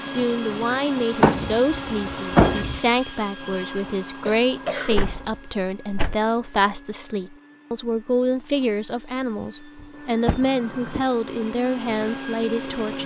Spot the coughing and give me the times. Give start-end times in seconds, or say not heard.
4.2-5.0.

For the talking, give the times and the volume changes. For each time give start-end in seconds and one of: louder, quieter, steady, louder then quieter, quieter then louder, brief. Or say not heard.
0.0-13.0 steady.